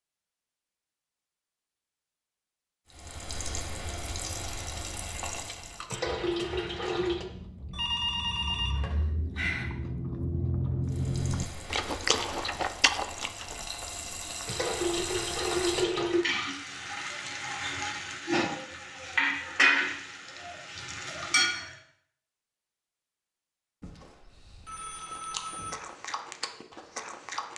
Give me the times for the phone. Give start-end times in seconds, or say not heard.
7.7-9.7, 23.8-25.8.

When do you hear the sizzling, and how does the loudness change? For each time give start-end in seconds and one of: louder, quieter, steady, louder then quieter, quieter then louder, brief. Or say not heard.
2.9-5.8 brief
10.8-21.8 louder.